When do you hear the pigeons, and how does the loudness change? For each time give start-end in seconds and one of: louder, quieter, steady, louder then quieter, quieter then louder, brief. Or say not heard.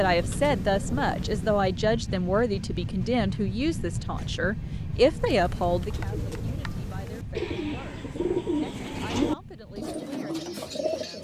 0.0-1.8 brief
5.0-11.1 louder then quieter.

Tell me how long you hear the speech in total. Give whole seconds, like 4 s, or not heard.
11 s.